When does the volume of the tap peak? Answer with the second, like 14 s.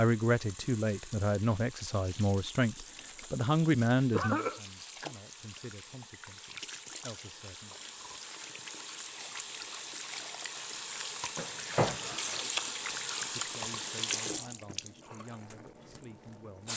13 s.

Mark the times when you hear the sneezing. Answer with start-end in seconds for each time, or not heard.
4.1-4.6, 11.3-12.4.